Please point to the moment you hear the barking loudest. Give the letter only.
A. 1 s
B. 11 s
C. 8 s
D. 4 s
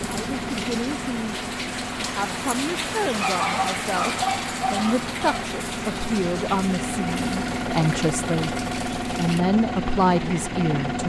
D.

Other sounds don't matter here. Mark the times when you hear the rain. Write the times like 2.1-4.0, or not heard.
0.0-9.4.